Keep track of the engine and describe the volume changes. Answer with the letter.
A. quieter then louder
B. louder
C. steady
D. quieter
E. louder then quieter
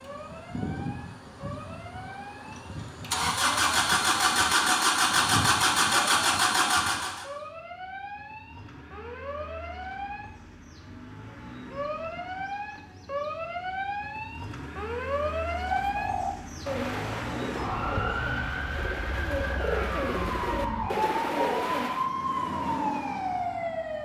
A.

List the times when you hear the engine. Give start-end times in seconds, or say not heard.
0.0-7.2.